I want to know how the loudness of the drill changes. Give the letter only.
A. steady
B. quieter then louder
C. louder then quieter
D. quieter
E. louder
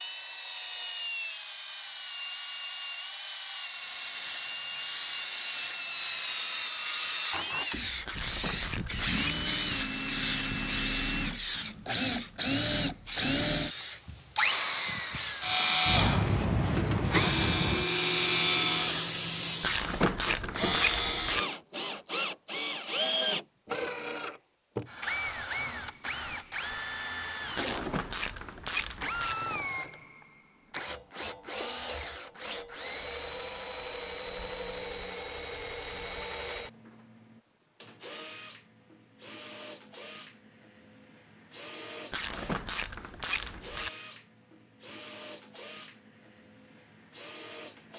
C.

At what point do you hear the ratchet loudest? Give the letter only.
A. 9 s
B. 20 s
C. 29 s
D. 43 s
B.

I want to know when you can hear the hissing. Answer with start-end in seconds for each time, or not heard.
3.6-20.1.